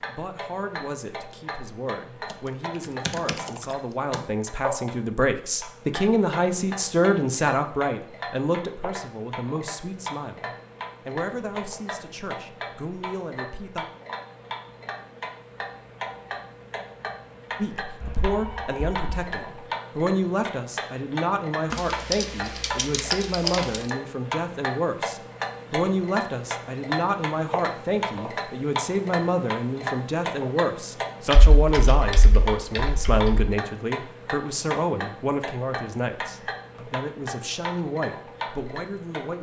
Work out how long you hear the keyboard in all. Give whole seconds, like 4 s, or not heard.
6 s.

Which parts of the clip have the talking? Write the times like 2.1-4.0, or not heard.
0.0-13.8, 17.6-39.3.